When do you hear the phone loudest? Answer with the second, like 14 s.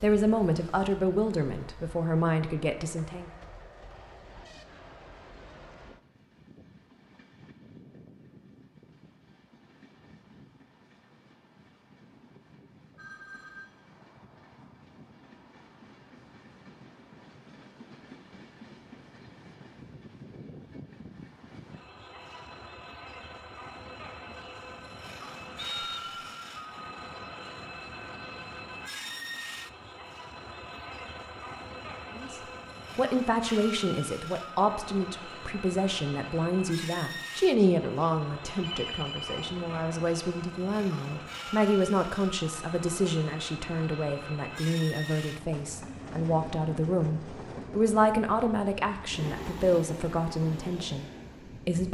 39 s.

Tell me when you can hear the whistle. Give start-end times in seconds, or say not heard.
25.6-26.3.